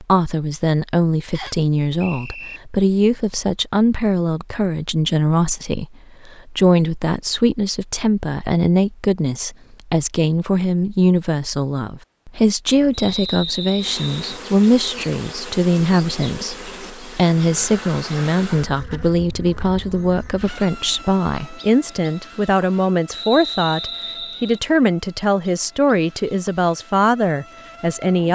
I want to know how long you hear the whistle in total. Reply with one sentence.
The whistle can be heard for 4 seconds in total.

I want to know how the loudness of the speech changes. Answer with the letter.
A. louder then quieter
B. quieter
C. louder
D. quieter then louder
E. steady
E.